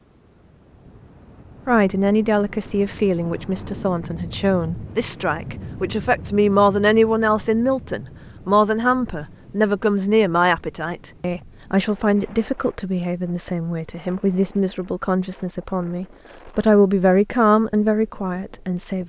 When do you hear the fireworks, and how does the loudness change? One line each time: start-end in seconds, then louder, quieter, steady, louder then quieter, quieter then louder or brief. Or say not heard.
not heard.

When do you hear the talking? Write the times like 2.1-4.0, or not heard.
1.6-19.0.